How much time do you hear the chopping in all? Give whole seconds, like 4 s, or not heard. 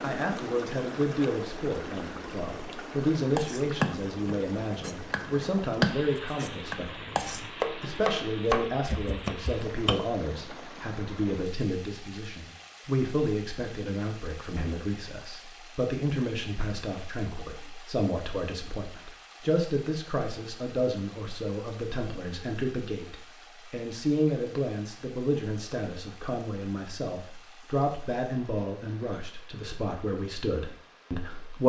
7 s.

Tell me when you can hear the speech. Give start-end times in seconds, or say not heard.
0.0-31.6.